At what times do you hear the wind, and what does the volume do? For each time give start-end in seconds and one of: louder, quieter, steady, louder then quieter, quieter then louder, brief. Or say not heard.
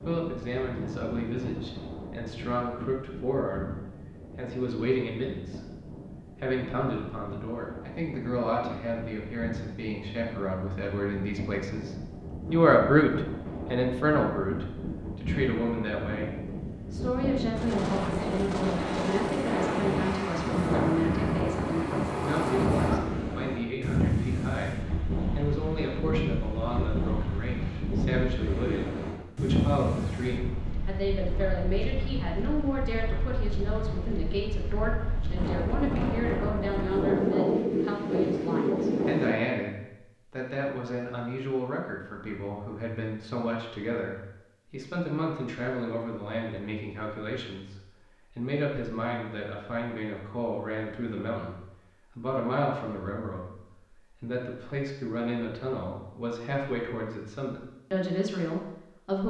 0.0-39.4 louder.